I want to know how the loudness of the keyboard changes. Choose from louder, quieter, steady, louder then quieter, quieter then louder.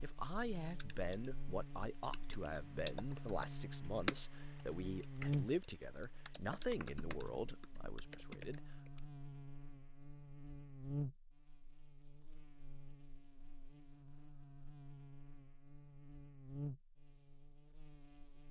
louder then quieter.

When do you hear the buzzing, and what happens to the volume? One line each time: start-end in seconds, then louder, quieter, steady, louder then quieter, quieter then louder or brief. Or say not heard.
0.0-18.4 louder then quieter.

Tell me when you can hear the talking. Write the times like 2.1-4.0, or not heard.
0.0-8.7.